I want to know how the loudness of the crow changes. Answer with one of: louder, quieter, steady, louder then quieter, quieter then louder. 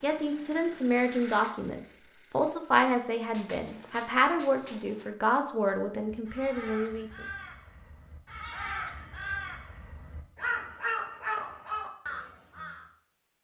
louder.